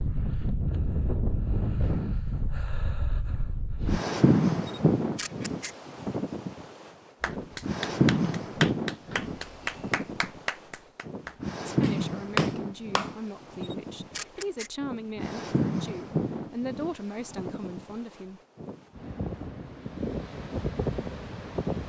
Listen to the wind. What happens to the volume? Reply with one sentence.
The loudness of the wind goes down.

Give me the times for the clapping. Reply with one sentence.
The clapping can be heard from 7.2 to 13.2 s.